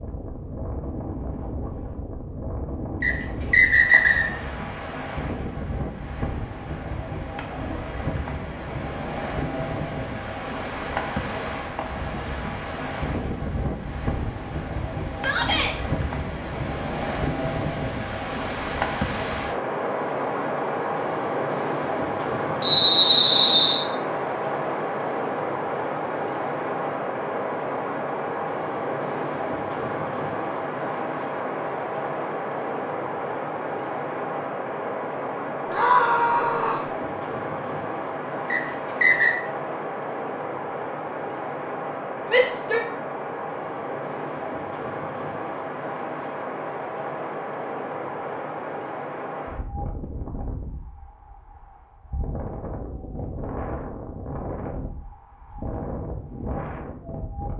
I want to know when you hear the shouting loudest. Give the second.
36 s.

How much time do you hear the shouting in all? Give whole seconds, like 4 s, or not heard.
2 s.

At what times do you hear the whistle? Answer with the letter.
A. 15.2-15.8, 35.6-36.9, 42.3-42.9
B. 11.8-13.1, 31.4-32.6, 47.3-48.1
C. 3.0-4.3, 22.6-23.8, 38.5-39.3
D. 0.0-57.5
C.